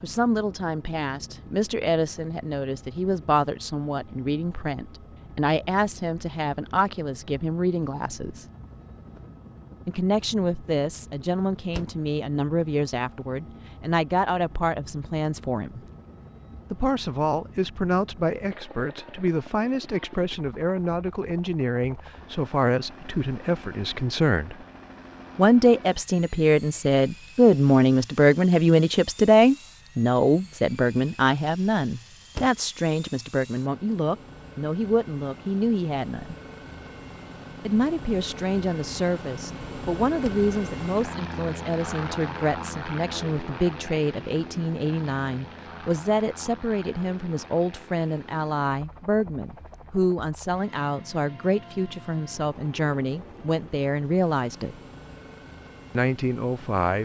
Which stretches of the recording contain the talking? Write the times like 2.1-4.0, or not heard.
0.0-8.4, 9.8-15.8, 16.7-24.6, 25.4-36.4, 37.6-54.8, 56.0-56.9.